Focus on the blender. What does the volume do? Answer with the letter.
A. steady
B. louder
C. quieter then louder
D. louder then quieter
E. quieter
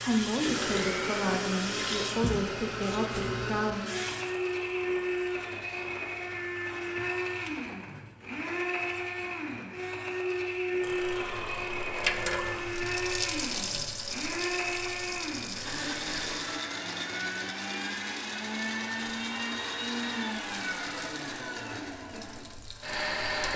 A.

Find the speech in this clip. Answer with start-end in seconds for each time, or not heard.
0.0-3.9.